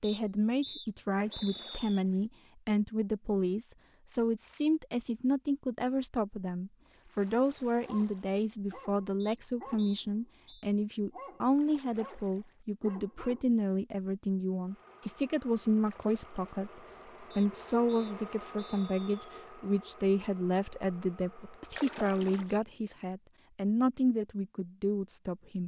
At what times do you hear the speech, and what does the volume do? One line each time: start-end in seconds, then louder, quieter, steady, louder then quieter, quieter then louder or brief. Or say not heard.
0.0-25.6 steady.